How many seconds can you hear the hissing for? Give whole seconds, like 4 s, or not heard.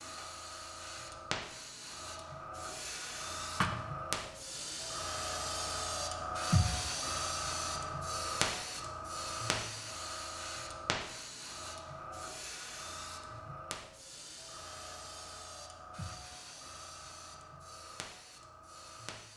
19 s.